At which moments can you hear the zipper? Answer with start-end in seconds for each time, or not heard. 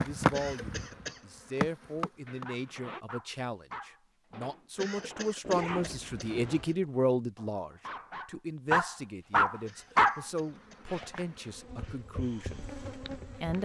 2.2-3.0, 5.4-6.8, 10.5-12.1.